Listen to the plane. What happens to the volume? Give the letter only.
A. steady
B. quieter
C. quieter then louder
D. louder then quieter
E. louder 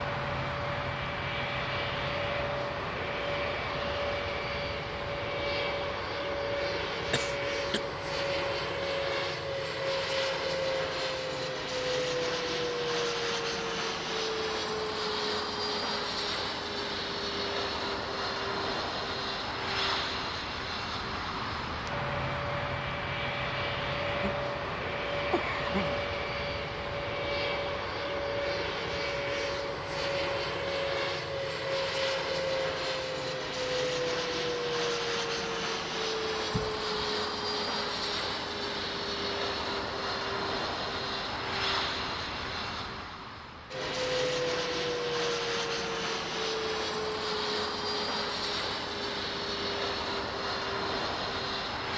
A.